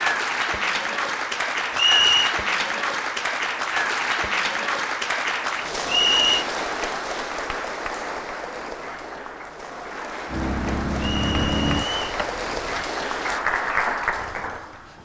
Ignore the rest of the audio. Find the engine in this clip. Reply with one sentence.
The engine can be heard from 10.2 to 12.8 s.